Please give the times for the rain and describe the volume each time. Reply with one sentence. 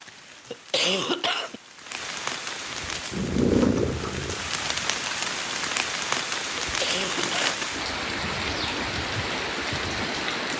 The rain can be heard from 0.0 to 10.5 s, getting louder.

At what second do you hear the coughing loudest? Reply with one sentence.
The volume of the coughing peaks at 1 second.